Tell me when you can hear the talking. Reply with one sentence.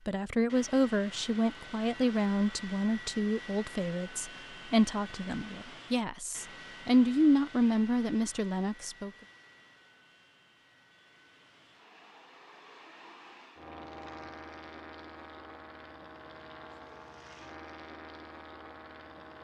You can hear the talking from 0.1 to 9.1 s.